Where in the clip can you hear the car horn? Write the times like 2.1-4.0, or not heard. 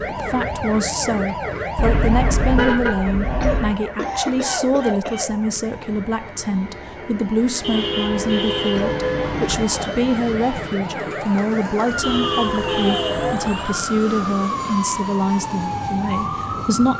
1.8-3.8, 7.6-9.7, 12.0-13.4.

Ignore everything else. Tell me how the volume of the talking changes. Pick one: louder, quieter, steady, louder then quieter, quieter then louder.
steady.